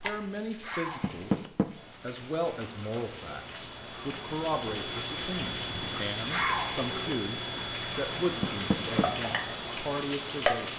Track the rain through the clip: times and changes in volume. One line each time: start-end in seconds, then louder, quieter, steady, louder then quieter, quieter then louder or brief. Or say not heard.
0.0-10.7 louder.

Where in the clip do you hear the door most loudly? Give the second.
1 s.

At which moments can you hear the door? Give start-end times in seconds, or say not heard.
1.0-1.7, 8.4-9.1.